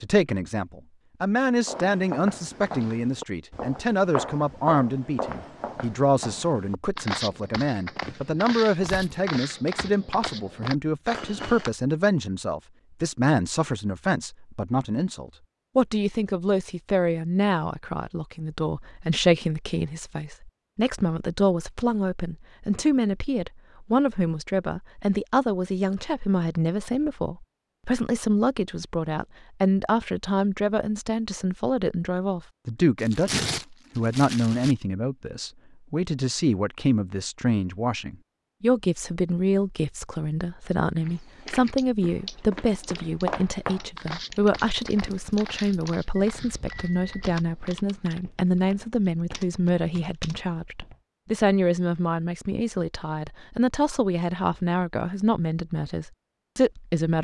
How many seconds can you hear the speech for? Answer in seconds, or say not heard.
57 s.